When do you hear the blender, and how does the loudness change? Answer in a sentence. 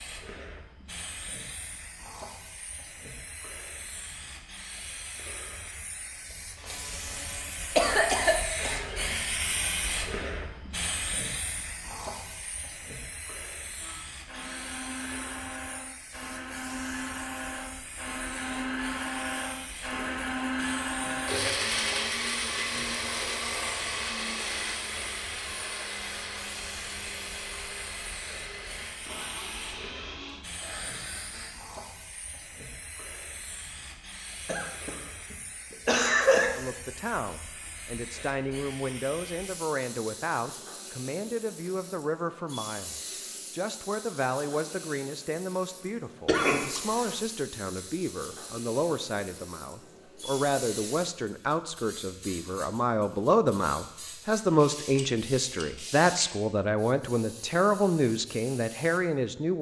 The blender can be heard from 13.8 to 31.6 s, getting louder then quieter.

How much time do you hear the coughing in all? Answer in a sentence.
You can hear the coughing for 5 seconds altogether.